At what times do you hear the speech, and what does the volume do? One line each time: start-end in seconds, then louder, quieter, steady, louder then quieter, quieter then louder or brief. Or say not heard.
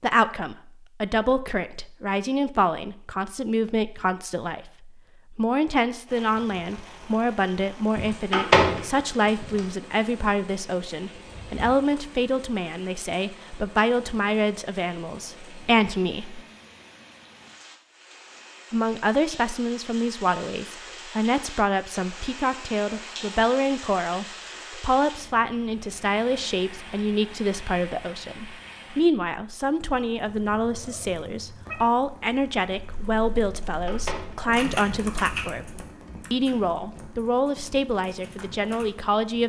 0.0-16.4 steady
18.7-39.4 steady.